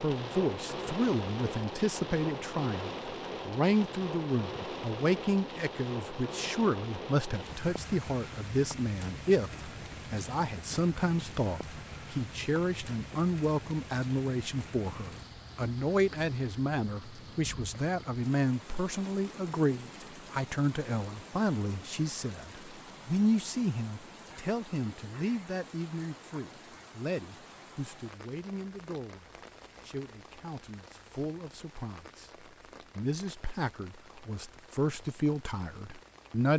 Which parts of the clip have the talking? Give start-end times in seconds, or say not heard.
0.0-36.5.